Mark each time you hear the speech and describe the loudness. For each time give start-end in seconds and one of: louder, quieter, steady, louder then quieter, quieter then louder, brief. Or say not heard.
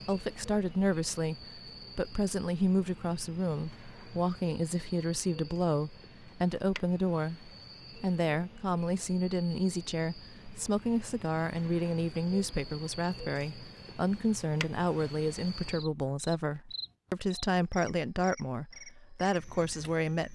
0.0-20.2 steady.